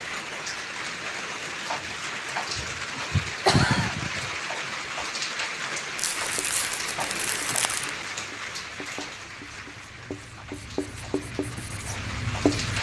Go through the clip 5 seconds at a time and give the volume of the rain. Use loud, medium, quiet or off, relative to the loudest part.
loud, loud, medium.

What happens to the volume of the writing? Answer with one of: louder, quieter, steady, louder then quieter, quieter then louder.
louder.